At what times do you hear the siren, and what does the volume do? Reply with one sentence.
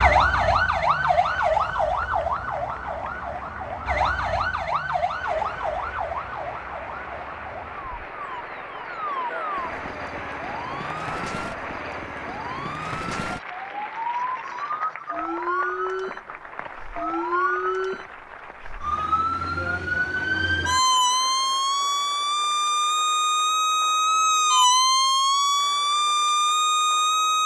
The siren can be heard from 0.0 to 27.4 s, getting quieter then louder.